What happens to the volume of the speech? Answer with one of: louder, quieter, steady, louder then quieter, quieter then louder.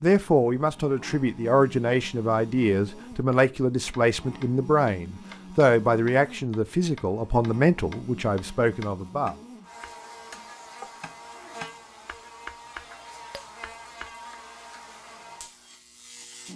steady.